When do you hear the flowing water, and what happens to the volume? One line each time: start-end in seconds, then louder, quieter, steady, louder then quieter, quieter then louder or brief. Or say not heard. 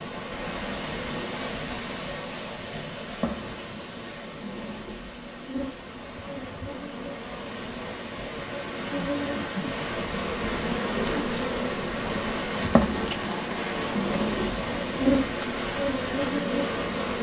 0.0-17.1 quieter then louder.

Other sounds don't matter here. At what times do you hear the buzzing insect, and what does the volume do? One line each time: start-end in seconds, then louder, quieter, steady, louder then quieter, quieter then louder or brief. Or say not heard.
0.0-17.1 louder.